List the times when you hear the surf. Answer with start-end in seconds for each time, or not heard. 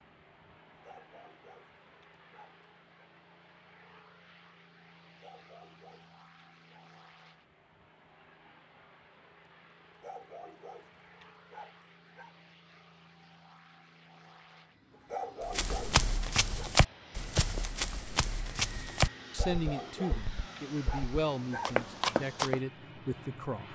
not heard.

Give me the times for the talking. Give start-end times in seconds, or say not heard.
19.3-23.7.